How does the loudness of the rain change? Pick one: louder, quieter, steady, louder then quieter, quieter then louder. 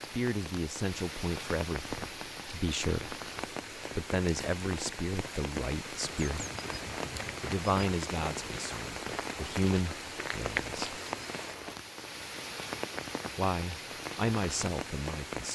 steady.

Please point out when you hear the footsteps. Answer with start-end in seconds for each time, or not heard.
6.0-11.8.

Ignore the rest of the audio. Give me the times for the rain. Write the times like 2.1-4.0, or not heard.
0.0-15.4.